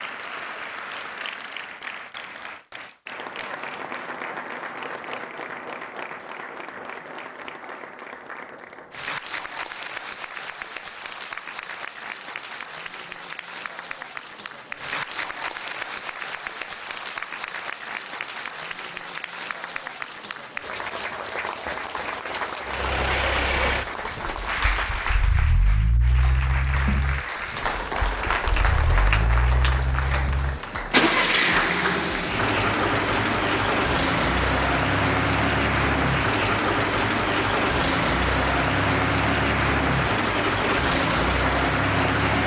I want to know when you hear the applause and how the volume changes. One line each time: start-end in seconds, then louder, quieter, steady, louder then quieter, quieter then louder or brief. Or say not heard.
0.0-42.4 louder.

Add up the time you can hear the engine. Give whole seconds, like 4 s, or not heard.
20 s.